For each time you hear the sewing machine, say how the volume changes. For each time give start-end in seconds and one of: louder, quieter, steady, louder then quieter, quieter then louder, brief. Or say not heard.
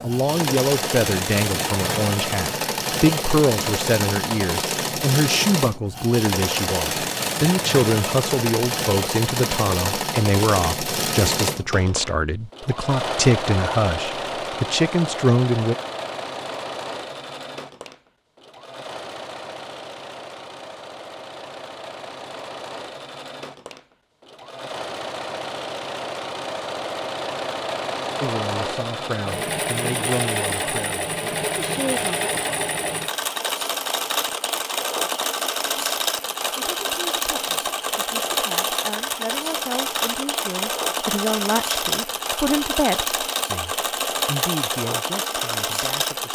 0.0-46.3 quieter then louder.